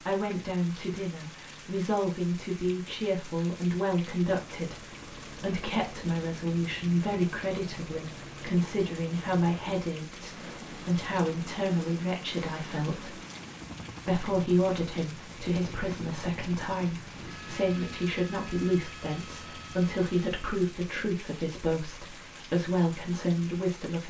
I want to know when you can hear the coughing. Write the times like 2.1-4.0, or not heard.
not heard.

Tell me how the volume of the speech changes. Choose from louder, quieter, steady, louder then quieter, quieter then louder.
steady.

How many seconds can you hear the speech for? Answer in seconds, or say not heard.
23 s.